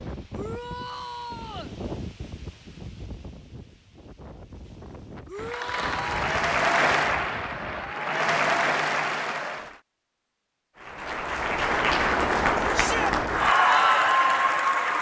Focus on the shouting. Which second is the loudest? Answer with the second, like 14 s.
13 s.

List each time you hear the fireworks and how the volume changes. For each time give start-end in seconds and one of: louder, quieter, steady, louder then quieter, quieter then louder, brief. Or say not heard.
not heard.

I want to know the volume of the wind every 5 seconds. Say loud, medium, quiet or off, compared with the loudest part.
loud, loud, off.